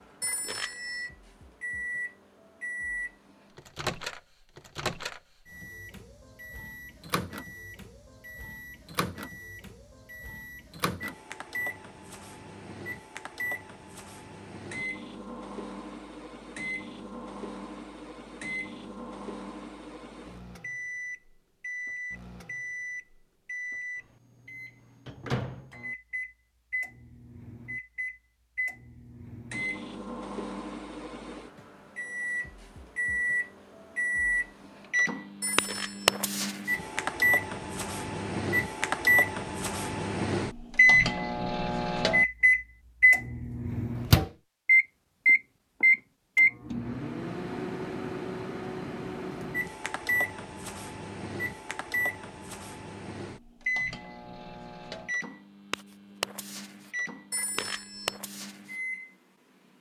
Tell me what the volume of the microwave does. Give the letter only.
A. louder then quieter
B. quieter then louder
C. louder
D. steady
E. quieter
A.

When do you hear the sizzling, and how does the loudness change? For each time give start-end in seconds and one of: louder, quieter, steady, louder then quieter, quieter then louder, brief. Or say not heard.
not heard.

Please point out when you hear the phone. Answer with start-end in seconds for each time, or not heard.
0.2-1.1, 35.4-36.2, 57.3-58.2.